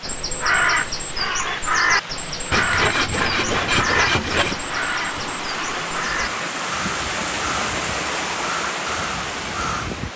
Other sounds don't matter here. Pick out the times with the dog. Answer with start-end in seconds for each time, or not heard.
not heard.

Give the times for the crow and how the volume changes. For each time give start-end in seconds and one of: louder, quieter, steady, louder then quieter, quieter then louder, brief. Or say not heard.
0.0-10.1 quieter.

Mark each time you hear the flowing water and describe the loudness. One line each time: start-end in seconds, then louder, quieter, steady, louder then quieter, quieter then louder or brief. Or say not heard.
0.0-10.1 louder.